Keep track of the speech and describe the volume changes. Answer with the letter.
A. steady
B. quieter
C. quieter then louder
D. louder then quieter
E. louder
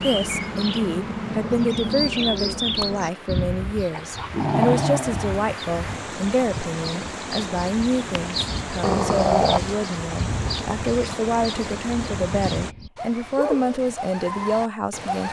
A.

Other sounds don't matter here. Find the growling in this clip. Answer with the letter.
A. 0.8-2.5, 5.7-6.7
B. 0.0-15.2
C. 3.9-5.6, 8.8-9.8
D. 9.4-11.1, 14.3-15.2
C.